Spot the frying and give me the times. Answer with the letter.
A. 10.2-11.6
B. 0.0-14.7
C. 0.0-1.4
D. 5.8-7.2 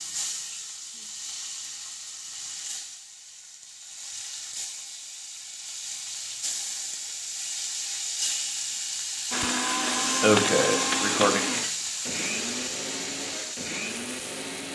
B.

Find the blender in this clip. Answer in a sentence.
The blender can be heard from 9.3 to 14.7 s.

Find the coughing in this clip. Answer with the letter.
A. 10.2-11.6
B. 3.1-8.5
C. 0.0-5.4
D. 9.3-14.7
A.